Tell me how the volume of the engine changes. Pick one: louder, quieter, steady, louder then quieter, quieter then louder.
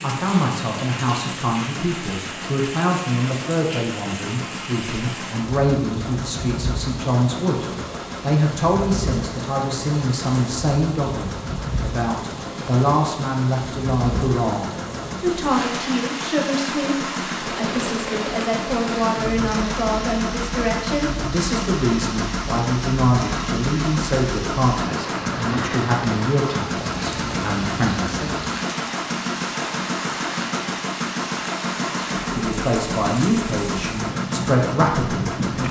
louder.